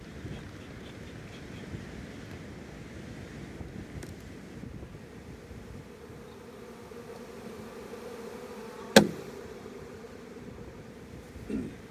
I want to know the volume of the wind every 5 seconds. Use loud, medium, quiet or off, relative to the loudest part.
loud, medium, medium.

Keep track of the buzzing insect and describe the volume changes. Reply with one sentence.
The loudness of the buzzing insect goes up, then down.